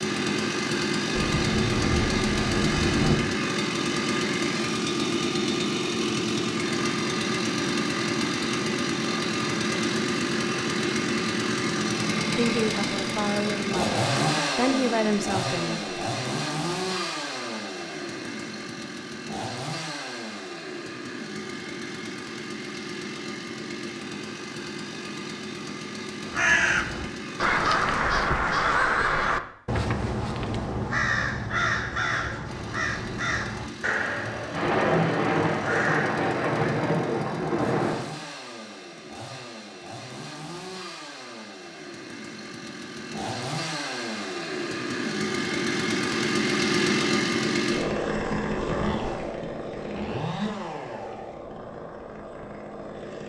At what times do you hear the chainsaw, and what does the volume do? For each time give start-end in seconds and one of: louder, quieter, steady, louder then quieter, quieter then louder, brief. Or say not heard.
0.0-28.0 quieter
32.5-53.2 louder then quieter.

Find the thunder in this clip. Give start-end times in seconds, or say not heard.
1.1-3.1, 34.5-38.0.